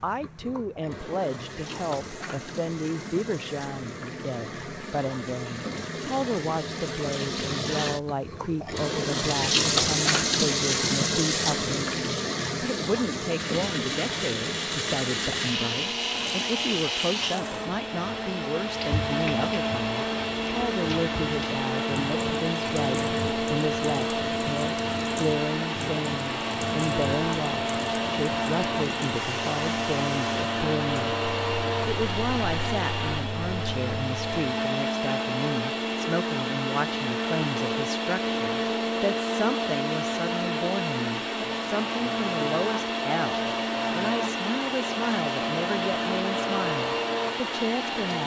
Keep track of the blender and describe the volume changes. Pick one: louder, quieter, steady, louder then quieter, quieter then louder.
steady.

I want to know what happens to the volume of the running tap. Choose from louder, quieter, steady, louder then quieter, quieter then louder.
louder then quieter.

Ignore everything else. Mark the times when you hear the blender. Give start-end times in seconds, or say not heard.
13.3-48.2.